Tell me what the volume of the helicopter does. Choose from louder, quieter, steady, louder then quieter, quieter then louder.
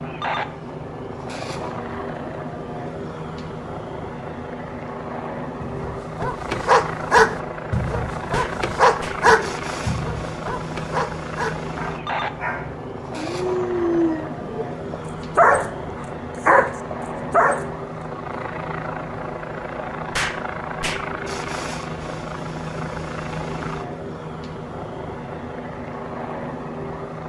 steady.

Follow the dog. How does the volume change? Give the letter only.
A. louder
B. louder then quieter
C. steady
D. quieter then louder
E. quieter
D.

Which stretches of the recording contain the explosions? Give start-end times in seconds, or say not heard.
8.3-9.2, 20.1-21.1.